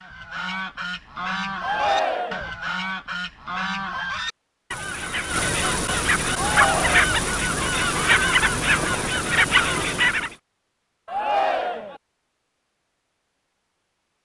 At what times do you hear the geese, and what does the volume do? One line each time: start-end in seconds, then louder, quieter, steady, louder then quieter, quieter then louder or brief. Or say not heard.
0.0-10.3 louder.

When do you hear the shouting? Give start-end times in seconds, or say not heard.
1.6-2.5, 6.3-7.1, 11.1-12.0.